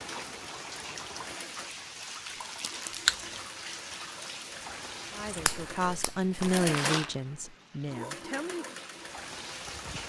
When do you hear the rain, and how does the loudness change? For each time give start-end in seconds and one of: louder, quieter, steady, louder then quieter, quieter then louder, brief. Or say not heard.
0.0-10.0 quieter then louder.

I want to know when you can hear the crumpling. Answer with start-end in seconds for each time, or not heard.
2.4-3.2, 6.4-7.2.